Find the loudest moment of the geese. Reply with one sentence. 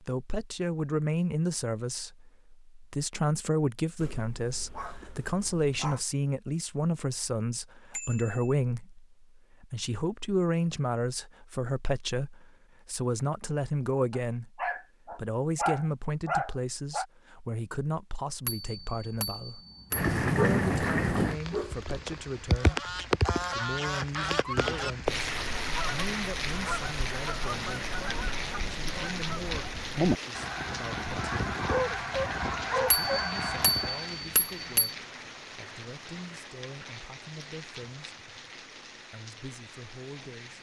The volume of the geese peaks at 30 seconds.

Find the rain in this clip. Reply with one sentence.
The rain can be heard from 19.9 to 40.5 s.